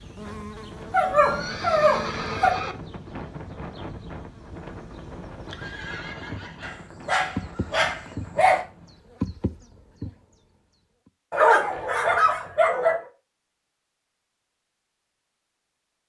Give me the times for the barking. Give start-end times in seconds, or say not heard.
0.9-2.5, 6.6-8.7, 11.3-13.1.